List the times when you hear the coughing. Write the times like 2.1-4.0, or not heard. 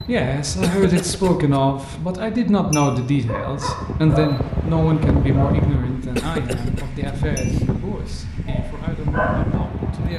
0.6-1.6, 6.2-7.7.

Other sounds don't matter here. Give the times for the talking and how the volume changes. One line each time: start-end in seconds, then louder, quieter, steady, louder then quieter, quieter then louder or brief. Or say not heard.
0.1-10.1 quieter.